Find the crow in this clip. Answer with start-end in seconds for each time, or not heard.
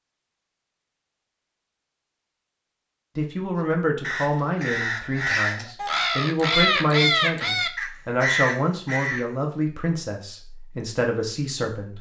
4.0-9.3.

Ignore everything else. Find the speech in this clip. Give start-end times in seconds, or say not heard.
3.1-11.9.